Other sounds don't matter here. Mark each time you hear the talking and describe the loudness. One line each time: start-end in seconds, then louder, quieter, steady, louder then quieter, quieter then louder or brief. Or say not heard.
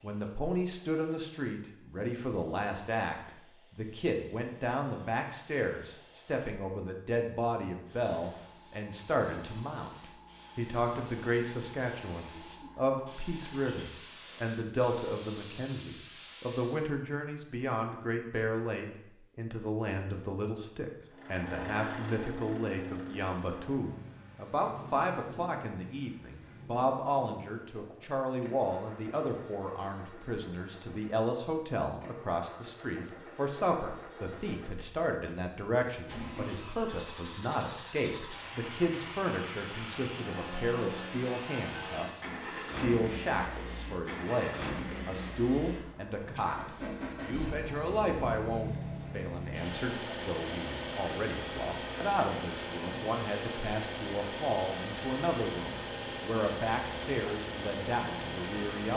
0.0-58.9 steady.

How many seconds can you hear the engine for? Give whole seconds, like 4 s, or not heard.
38 s.